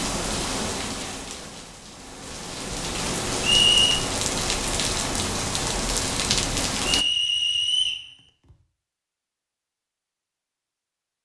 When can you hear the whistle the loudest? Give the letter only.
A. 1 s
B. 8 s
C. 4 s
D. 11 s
C.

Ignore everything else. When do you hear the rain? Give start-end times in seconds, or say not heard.
0.0-7.0.